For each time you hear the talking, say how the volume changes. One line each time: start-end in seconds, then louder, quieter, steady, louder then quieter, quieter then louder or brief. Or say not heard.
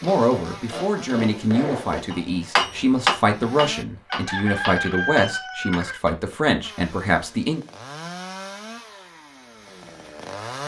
0.0-7.6 steady.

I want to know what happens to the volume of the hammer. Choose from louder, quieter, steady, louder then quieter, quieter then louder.
louder then quieter.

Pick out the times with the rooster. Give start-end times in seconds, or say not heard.
4.1-6.0.